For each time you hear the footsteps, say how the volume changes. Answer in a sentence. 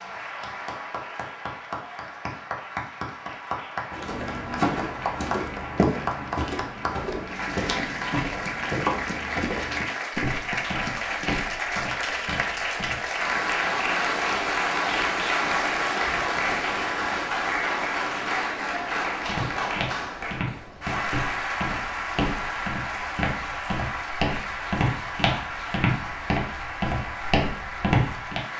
The footsteps can be heard from 3.9 to 13.1 s, getting quieter; and from 19.2 to 28.4 s, getting louder.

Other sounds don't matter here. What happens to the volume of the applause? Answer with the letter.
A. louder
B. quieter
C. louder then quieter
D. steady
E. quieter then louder
C.